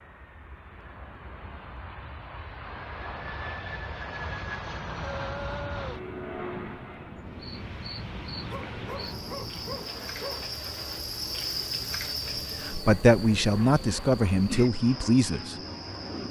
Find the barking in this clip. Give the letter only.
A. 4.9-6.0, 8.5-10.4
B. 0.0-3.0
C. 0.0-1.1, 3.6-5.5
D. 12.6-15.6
A.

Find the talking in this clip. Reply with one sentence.
You can hear the talking from 12.6 to 15.6 s.